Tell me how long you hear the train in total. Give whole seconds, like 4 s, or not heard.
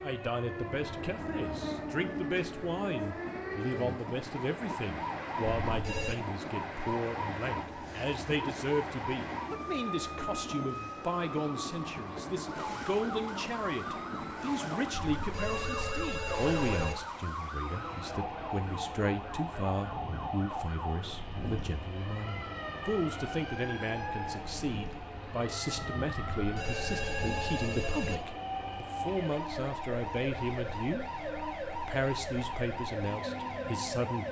34 s.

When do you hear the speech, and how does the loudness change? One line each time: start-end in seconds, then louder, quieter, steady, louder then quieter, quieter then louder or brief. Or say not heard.
0.0-31.1 steady
31.7-34.2 brief.